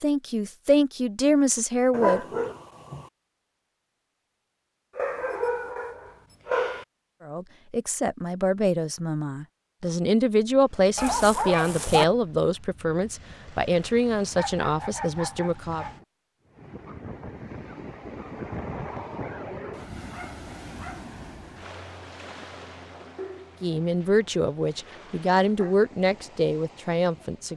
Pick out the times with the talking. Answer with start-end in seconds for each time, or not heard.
0.0-2.2, 7.2-15.8, 23.6-27.5.